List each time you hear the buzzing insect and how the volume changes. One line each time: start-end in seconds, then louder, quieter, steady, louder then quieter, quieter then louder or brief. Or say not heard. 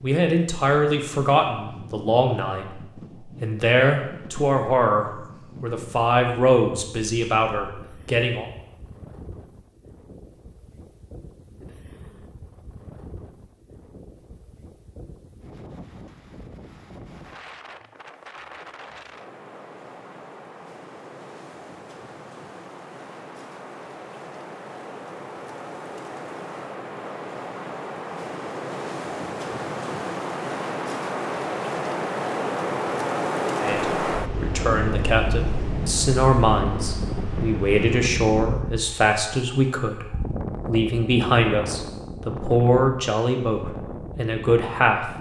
not heard.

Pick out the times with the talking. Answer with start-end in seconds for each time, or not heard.
0.0-2.7, 3.4-8.4, 33.6-45.1.